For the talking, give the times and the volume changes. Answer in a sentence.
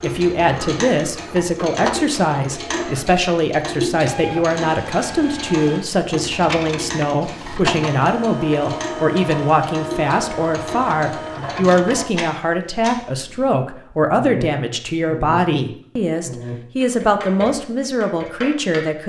The talking can be heard from 0.0 to 19.0 s, at a steady volume.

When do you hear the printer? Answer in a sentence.
You can hear the printer from 0.0 to 12.1 s.